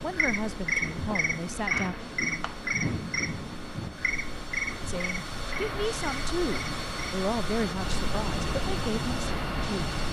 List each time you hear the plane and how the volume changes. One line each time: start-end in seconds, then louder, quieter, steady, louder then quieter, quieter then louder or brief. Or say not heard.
0.0-10.0 louder.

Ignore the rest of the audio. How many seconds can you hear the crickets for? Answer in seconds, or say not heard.
10 s.